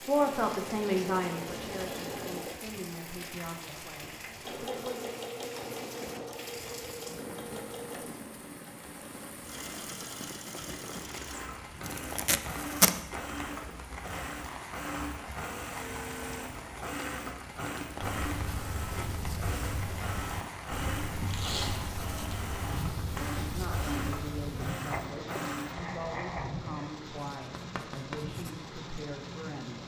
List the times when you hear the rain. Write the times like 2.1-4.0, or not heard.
0.0-29.8.